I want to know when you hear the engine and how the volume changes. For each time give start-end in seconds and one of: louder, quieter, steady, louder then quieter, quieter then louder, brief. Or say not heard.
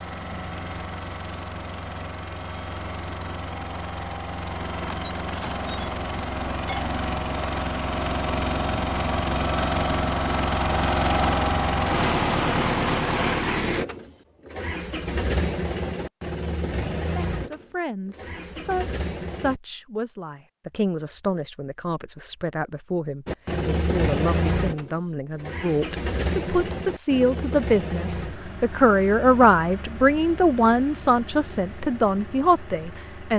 0.0-19.6 louder then quieter
23.2-33.3 quieter.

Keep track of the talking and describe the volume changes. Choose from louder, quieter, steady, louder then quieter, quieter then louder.
louder.